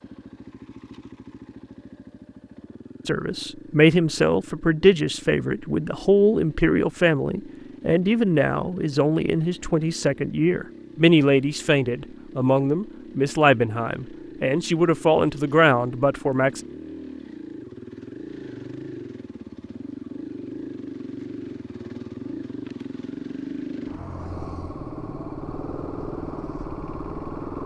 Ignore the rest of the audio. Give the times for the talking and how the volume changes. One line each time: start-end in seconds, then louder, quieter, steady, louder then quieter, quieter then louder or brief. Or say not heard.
3.0-16.6 steady.